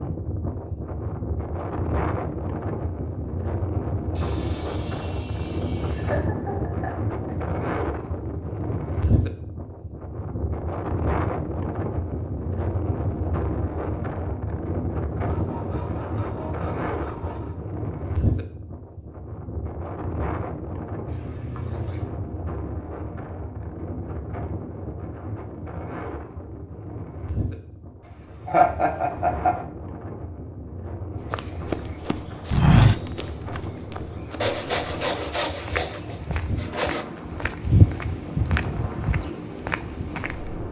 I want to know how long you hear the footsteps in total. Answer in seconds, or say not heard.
9 s.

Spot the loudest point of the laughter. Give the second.
29 s.